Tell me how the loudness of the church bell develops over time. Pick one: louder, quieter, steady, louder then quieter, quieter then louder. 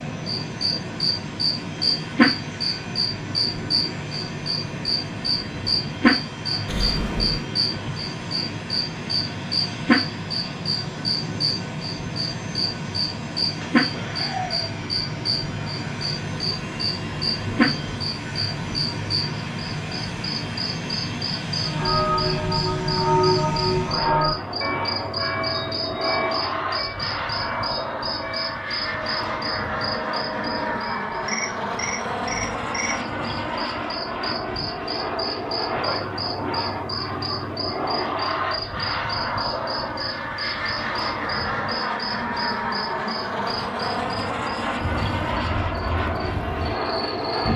quieter.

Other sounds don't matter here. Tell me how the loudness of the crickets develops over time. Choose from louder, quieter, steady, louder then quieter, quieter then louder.
quieter.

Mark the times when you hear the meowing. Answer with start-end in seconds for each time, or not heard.
6.7-7.5.